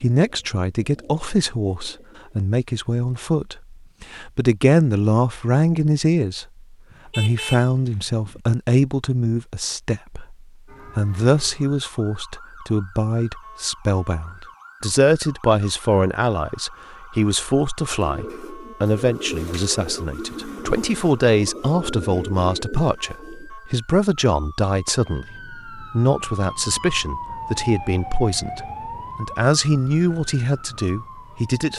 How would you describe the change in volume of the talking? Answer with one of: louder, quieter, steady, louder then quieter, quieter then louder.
steady.